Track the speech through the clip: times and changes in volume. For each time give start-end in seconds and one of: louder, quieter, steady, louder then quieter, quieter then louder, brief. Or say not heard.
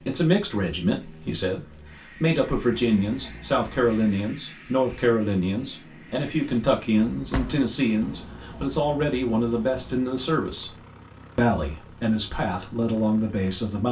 0.0-13.8 steady.